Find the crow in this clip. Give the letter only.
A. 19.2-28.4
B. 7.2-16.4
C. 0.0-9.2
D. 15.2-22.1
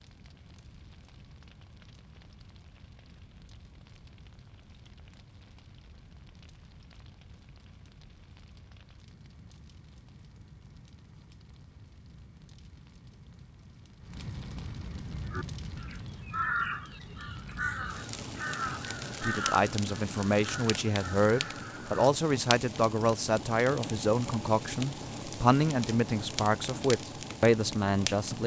D.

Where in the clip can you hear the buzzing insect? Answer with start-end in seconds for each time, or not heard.
not heard.